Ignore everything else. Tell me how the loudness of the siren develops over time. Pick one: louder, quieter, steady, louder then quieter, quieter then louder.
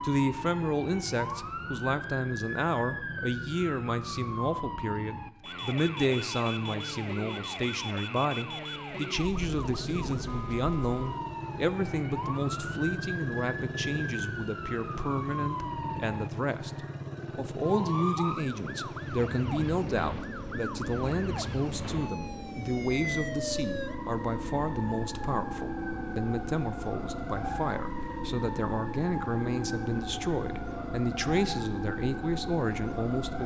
steady.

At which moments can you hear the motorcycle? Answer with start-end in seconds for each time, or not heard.
9.3-33.4.